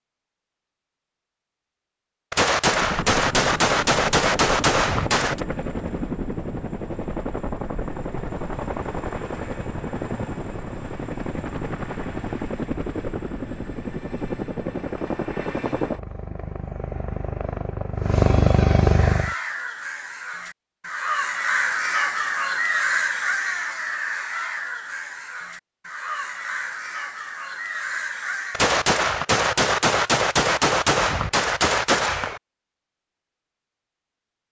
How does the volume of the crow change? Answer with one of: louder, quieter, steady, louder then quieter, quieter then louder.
louder then quieter.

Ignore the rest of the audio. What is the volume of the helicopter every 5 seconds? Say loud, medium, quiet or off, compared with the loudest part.
medium, medium, medium, loud, off, off, off.